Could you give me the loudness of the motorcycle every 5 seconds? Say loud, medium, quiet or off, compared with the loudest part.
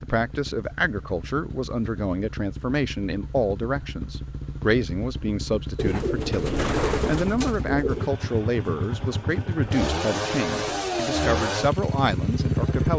quiet, medium, loud.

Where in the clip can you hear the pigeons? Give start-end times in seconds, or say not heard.
5.8-8.1.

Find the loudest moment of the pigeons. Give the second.
7 s.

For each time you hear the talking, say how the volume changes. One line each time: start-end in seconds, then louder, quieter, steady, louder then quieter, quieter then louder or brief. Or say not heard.
0.0-12.9 steady.